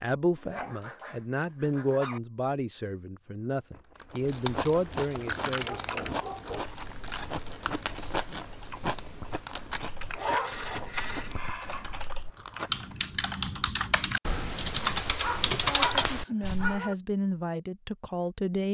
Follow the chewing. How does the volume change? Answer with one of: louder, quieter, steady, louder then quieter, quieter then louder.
quieter.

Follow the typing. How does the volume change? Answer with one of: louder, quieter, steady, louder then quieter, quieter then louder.
louder.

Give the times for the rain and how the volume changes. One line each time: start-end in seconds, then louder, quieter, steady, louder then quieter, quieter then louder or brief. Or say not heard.
not heard.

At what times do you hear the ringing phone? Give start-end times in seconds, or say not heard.
10.0-11.3.